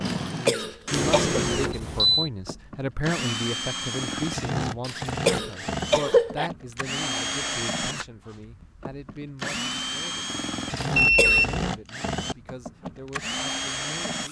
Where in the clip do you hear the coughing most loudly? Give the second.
6 s.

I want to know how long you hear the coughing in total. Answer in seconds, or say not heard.
4 s.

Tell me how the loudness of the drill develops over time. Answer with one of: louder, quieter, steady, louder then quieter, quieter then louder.
steady.